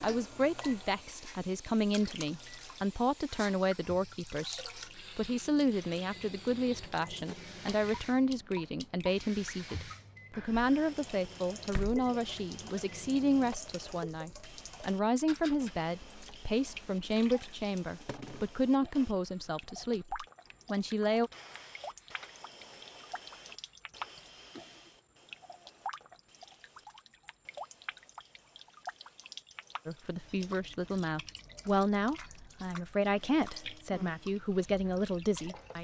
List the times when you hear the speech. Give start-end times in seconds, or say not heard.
0.0-21.3, 29.9-35.7.